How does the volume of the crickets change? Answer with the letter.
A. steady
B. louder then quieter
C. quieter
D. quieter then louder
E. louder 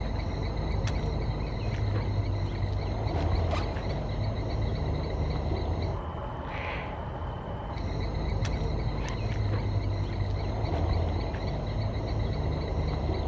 A.